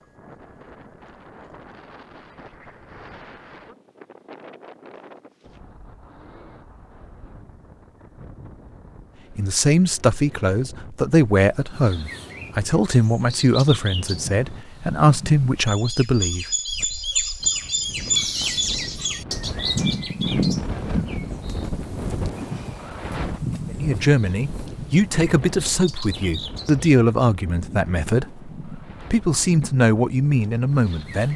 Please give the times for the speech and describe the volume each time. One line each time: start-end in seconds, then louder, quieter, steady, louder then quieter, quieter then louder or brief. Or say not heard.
9.3-16.9 steady
23.7-31.3 steady.